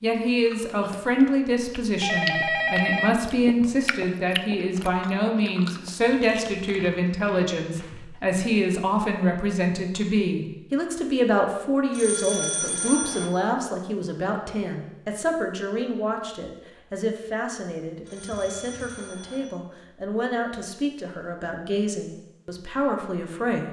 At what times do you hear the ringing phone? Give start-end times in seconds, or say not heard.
2.0-3.1, 11.9-13.3, 18.1-19.4.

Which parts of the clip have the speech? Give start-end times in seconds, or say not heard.
0.0-23.6.